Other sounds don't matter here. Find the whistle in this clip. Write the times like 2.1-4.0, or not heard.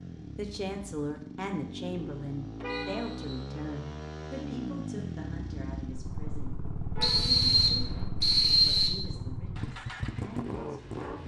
2.9-3.5, 7.0-8.9.